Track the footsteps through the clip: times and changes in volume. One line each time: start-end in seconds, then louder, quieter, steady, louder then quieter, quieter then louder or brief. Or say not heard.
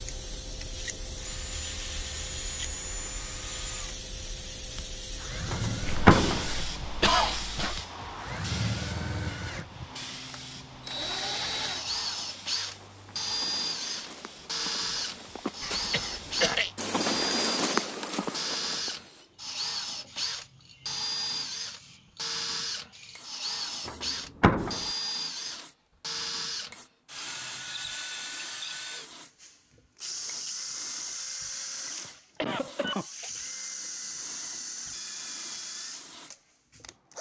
12.6-18.9 louder.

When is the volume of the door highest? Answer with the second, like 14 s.
6 s.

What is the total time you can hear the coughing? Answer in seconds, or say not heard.
5 s.